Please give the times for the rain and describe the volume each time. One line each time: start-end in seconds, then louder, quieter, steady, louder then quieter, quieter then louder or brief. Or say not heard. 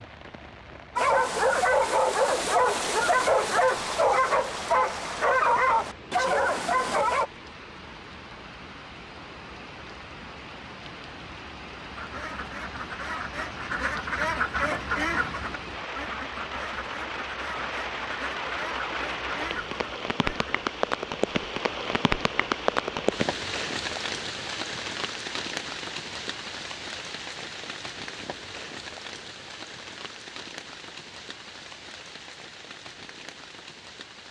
0.0-34.2 louder then quieter.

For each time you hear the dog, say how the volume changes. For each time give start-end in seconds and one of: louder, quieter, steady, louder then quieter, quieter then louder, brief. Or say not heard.
0.9-7.3 steady.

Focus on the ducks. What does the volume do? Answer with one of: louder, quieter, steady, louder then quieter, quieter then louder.
louder then quieter.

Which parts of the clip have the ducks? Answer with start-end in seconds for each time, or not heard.
11.8-20.6.